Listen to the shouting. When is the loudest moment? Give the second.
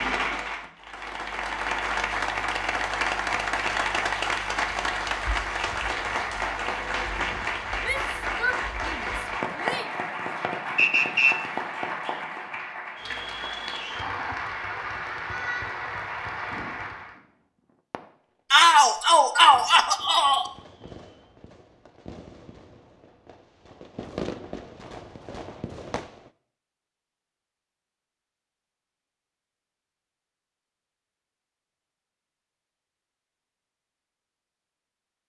19 s.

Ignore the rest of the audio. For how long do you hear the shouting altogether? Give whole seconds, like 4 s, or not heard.
4 s.